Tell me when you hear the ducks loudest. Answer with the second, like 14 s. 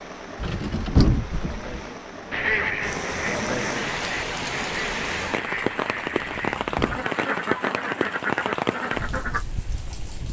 3 s.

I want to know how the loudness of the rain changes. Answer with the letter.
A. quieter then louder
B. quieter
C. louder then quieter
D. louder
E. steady
D.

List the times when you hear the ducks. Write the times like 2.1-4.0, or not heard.
2.3-9.4.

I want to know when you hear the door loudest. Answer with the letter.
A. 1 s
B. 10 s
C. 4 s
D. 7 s
A.